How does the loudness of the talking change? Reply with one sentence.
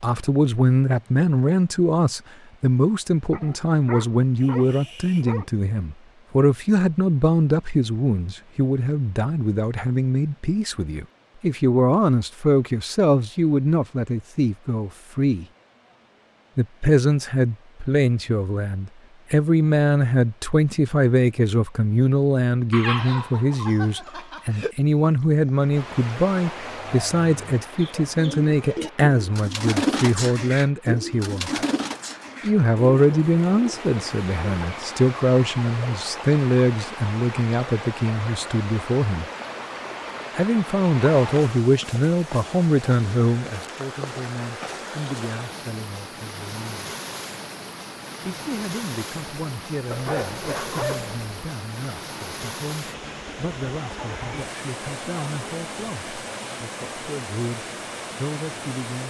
The loudness of the talking goes down.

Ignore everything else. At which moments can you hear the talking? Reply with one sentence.
The talking can be heard from 0.0 to 15.4 s, from 16.6 to 31.5 s, from 32.4 to 39.2 s, from 40.4 to 46.9 s and from 48.2 to 59.0 s.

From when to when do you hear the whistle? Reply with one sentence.
You can't hear the whistle here.